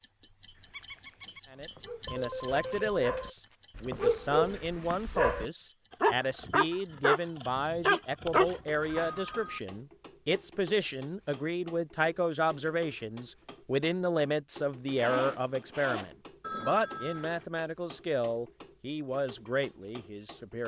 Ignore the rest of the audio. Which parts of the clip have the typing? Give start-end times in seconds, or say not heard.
not heard.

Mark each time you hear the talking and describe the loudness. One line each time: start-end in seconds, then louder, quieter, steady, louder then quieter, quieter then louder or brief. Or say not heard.
1.5-20.6 steady.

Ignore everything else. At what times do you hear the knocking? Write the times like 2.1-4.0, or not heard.
not heard.